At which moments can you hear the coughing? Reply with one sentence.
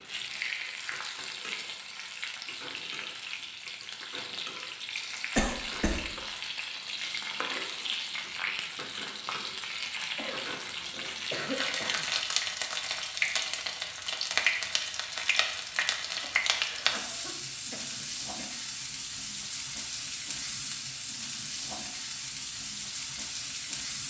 The coughing can be heard from 5.3 to 6.0 s, from 10.2 to 12.1 s and from 16.2 to 18.6 s.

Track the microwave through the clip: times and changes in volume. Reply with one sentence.
You can't hear the microwave here.